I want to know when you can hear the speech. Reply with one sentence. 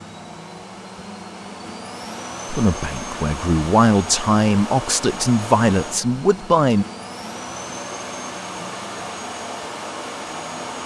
You can hear the speech from 2.5 to 6.8 s.